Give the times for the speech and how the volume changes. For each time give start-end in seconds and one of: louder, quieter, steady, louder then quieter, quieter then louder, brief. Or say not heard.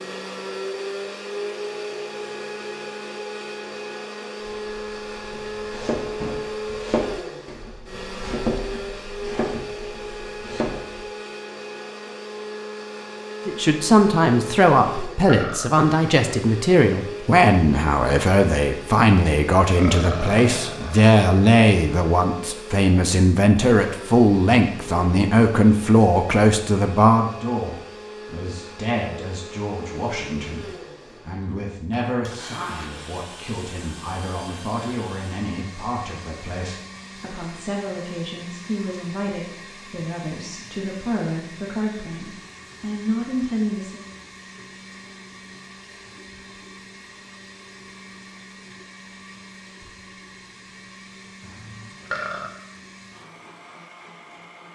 13.4-44.0 quieter.